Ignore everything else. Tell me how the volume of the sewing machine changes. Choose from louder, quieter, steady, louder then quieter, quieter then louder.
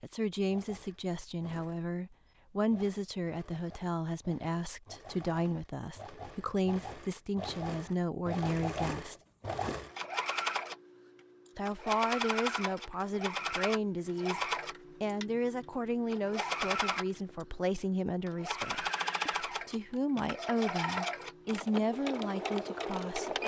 louder.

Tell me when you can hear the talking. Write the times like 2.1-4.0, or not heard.
0.0-9.2, 11.6-14.4, 15.0-23.4.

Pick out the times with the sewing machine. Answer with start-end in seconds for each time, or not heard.
0.3-23.4.